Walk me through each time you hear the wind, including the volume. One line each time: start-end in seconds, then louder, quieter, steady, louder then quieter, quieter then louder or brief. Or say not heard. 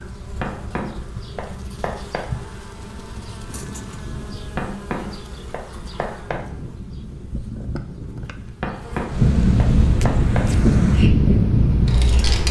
0.0-12.4 louder.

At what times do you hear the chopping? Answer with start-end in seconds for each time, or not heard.
0.4-2.3, 4.5-6.5, 8.6-10.5.